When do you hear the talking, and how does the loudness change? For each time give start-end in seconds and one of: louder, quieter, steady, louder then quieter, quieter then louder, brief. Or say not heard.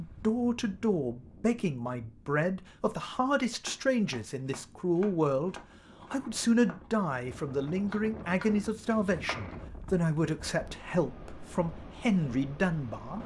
0.0-13.2 steady.